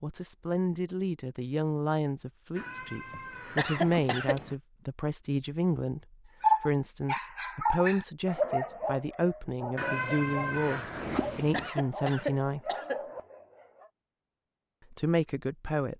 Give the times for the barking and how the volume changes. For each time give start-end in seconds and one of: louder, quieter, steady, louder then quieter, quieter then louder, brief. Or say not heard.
6.4-13.9 quieter.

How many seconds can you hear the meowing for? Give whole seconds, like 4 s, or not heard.
4 s.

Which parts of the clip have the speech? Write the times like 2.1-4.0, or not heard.
0.0-6.0, 6.6-12.6, 14.9-15.9.